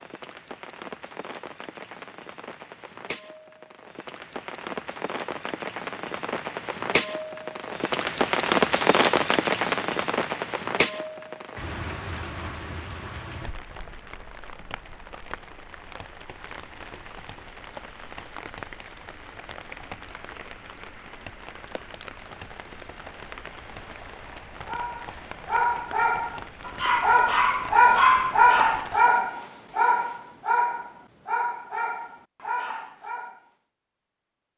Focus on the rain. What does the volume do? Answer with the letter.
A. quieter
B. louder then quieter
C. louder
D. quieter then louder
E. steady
B.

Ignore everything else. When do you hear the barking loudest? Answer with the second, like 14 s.
28 s.